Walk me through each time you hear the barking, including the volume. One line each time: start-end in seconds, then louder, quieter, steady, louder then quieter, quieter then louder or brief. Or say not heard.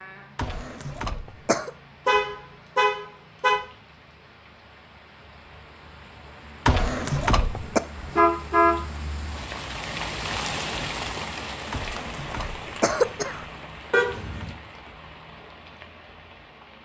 not heard.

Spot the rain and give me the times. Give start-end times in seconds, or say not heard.
0.0-16.7.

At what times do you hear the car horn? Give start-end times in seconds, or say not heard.
2.0-3.6, 8.0-8.8, 13.9-14.6.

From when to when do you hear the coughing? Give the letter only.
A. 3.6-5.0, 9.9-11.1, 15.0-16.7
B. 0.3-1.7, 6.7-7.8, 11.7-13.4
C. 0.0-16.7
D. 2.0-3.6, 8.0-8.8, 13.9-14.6
B.